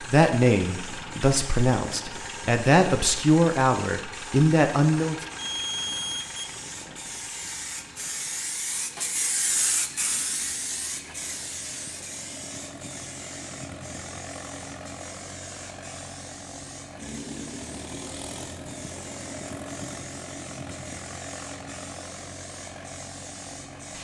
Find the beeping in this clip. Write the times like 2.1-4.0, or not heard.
5.3-6.5.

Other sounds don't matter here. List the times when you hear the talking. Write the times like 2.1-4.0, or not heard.
0.1-5.2.